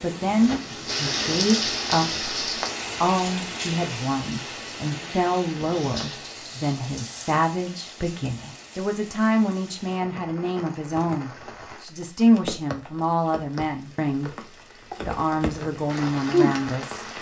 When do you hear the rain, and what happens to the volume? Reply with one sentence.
You can hear the rain from 0.0 to 17.1 s, getting quieter then louder.